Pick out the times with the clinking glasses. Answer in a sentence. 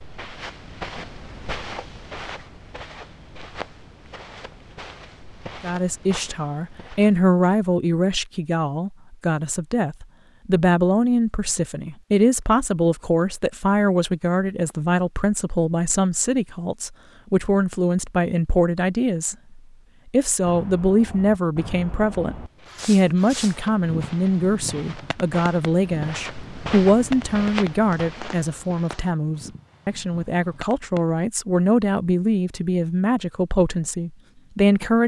You can't hear the clinking glasses here.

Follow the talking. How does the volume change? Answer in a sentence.
The loudness of the talking stays about the same.